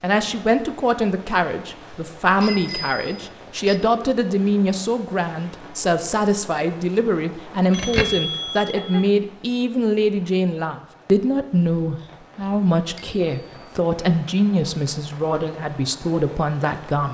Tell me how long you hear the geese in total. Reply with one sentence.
The geese can't be heard in this clip.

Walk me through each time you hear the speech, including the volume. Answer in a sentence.
The speech can be heard from 0.0 to 17.0 s, at a steady volume.